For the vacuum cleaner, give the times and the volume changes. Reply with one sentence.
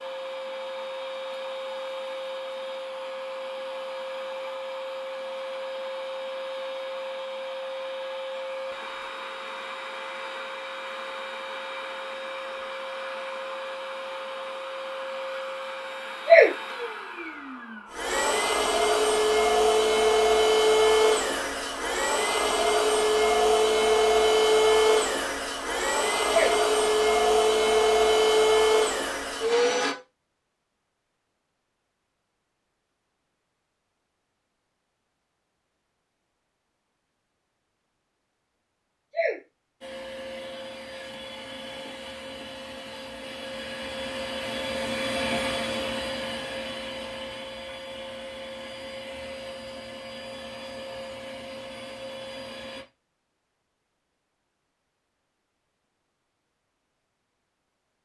The vacuum cleaner can be heard from 0.0 to 29.9 s, getting louder; and from 39.8 to 52.9 s, getting louder then quieter.